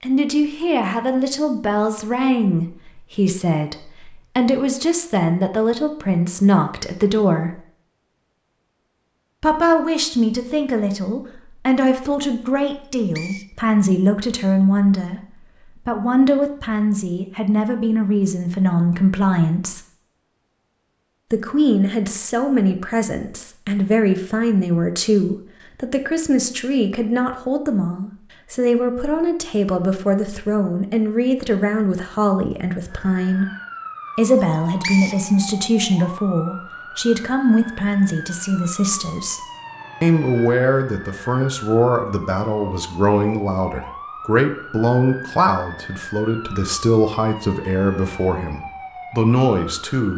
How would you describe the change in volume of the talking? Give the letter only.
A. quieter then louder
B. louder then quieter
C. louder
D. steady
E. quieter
D.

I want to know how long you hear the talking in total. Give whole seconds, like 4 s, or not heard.
45 s.